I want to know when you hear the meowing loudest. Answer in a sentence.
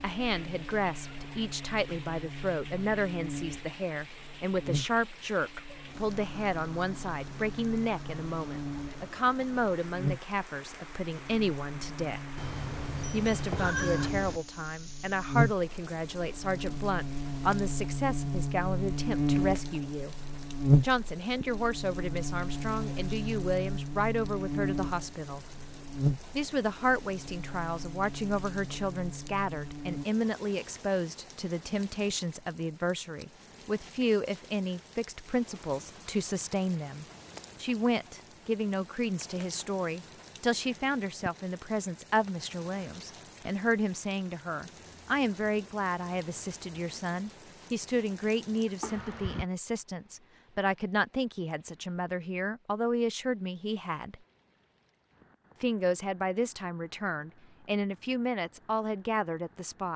The volume of the meowing peaks at 14 seconds.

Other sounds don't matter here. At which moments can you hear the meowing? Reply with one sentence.
You can hear the meowing from 12.3 to 14.4 s and from 48.8 to 49.5 s.